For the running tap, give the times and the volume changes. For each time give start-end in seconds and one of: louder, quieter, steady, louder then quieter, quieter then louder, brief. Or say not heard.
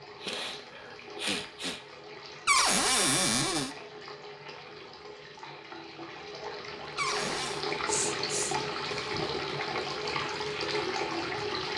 0.0-11.7 louder.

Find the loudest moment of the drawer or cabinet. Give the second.
3 s.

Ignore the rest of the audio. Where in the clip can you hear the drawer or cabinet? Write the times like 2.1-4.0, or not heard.
2.5-3.8, 7.0-7.7.